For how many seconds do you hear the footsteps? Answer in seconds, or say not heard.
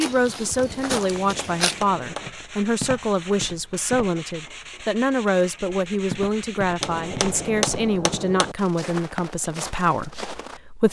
9 s.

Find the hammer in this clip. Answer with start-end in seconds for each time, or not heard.
0.6-2.3, 6.8-8.6.